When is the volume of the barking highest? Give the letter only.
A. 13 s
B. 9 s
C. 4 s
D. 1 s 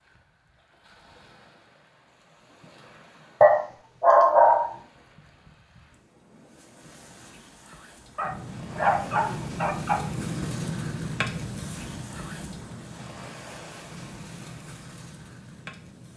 C.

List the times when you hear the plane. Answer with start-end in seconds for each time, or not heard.
8.2-16.1.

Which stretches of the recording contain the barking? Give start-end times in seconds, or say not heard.
3.4-4.8, 8.2-10.0.